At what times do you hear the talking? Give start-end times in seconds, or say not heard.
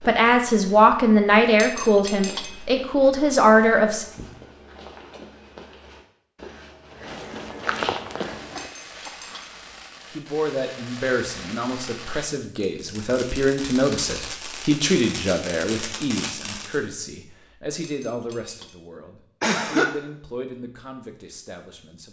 0.1-4.0, 10.1-22.0.